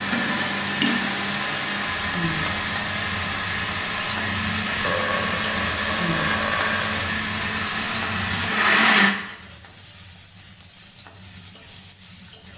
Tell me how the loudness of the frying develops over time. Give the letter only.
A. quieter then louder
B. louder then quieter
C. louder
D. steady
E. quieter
E.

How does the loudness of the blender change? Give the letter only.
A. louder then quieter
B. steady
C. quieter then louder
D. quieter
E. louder
B.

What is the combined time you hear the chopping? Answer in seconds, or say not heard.
not heard.